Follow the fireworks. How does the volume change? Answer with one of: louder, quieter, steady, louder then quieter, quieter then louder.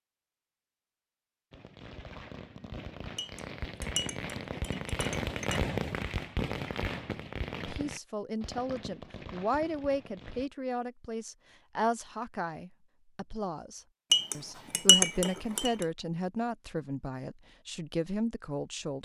louder then quieter.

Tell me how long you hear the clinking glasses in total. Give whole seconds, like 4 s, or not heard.
4 s.